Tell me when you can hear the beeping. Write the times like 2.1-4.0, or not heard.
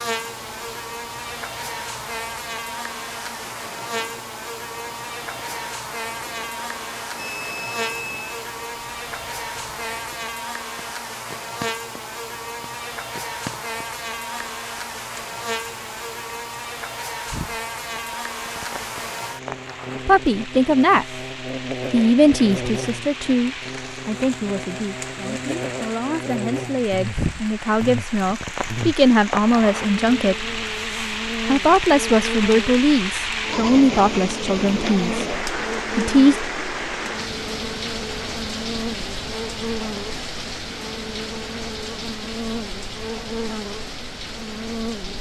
7.2-8.4.